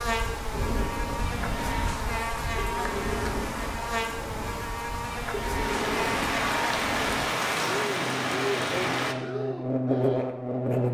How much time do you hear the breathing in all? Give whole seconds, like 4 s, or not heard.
10 s.